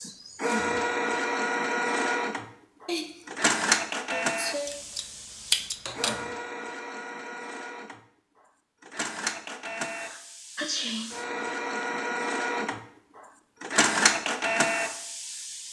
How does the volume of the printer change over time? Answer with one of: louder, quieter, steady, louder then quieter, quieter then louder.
quieter then louder.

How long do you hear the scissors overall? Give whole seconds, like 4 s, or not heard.
2 s.